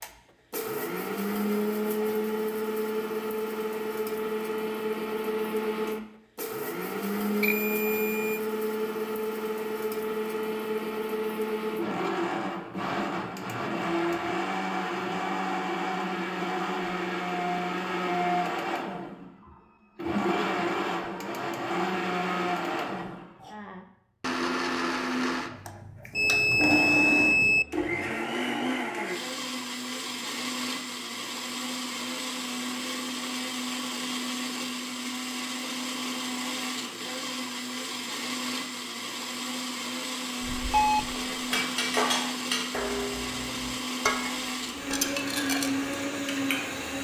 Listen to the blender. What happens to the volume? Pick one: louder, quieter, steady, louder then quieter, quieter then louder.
steady.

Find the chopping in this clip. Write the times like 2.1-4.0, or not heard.
not heard.